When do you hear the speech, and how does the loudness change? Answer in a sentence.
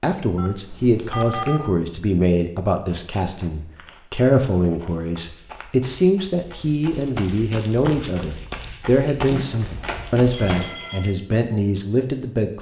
You can hear the speech from 0.0 to 12.5 s, at a steady volume.